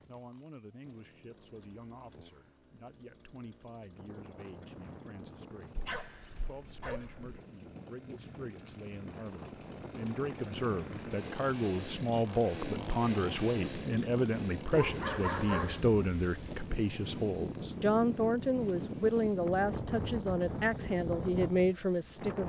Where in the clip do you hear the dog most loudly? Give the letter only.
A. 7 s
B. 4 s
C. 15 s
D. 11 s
C.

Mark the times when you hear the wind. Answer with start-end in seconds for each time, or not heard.
3.9-22.4.